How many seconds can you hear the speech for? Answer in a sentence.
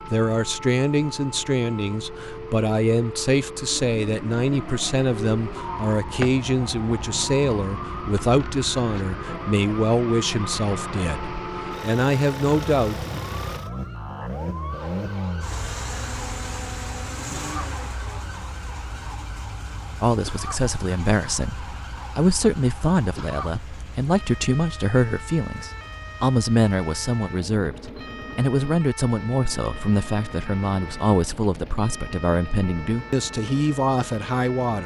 The speech can be heard for 28 seconds in total.